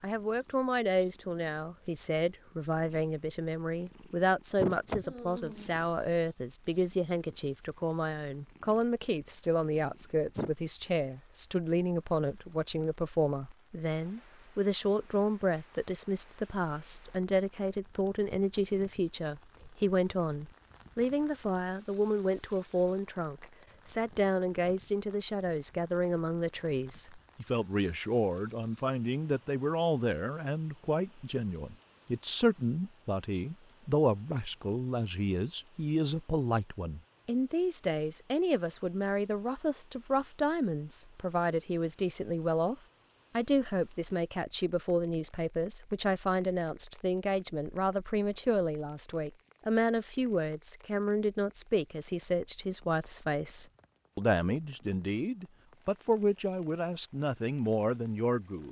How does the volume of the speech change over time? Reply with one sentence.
The volume of the speech stays about the same.